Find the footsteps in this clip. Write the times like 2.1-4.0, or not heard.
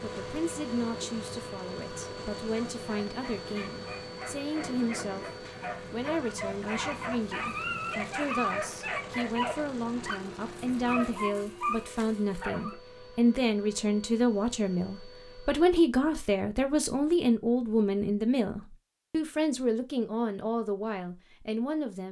not heard.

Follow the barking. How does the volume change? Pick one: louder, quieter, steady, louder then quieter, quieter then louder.
louder.